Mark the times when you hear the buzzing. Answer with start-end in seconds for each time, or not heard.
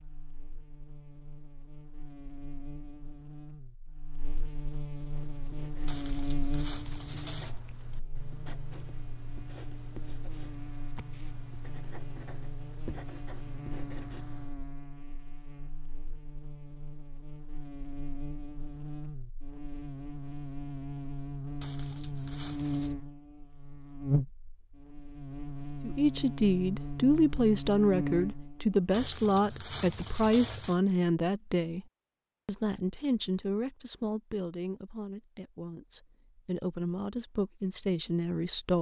0.0-28.8.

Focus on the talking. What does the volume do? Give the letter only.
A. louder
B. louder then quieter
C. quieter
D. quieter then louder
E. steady
D.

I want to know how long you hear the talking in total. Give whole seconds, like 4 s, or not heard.
12 s.